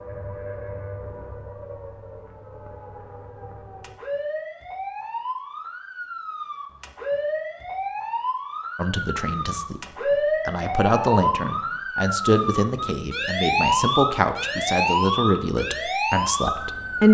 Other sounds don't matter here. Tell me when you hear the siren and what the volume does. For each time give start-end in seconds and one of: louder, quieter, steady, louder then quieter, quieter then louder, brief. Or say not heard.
0.0-17.0 louder.